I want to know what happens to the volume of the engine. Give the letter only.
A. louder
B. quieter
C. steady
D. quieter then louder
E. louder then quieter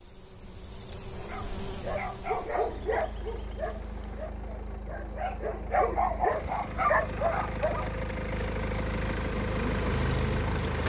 A.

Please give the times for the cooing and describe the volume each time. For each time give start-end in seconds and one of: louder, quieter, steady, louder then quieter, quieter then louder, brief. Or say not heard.
not heard.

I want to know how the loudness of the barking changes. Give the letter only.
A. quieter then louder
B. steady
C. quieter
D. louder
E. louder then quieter
A.